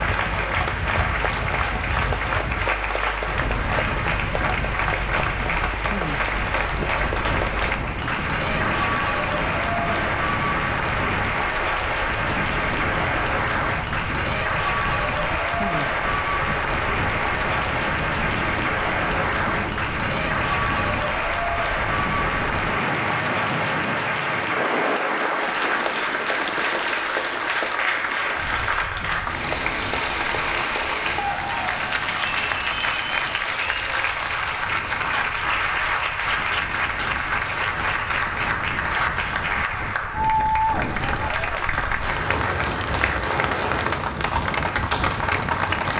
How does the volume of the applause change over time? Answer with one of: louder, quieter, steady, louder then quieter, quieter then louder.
steady.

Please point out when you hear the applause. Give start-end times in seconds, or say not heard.
0.0-45.9.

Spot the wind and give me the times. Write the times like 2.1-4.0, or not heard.
0.0-45.9.